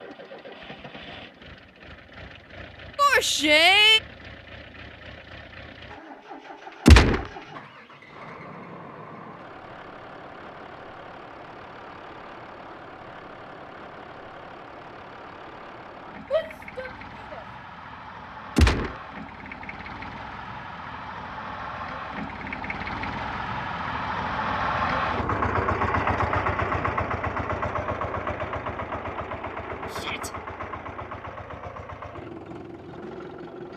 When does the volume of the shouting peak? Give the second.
4 s.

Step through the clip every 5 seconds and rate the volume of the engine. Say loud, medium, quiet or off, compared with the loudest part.
quiet, quiet, quiet, quiet, loud, loud, medium.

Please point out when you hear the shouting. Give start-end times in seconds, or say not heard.
3.0-4.0, 16.3-17.4, 29.9-30.3.